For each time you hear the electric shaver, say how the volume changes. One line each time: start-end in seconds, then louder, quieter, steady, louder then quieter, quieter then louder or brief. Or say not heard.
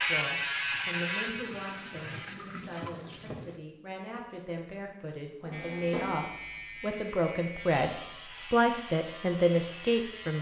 0.0-2.4 brief
5.5-10.3 steady.